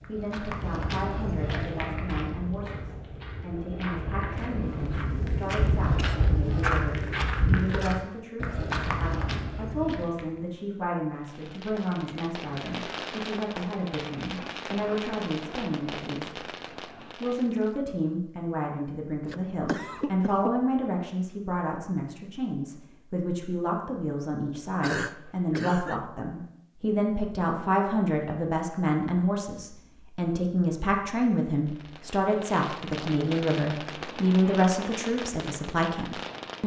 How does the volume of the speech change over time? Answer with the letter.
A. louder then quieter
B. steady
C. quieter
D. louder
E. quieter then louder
D.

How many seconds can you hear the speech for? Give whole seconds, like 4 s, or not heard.
36 s.